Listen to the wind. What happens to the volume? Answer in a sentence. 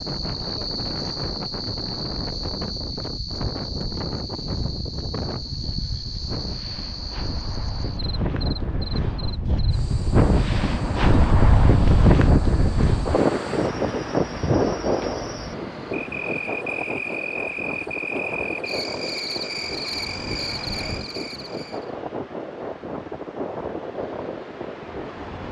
The volume of the wind goes up, then down.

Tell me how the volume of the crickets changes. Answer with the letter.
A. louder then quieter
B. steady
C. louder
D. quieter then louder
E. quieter
D.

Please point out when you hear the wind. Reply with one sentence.
The wind can be heard from 0.0 to 25.4 s.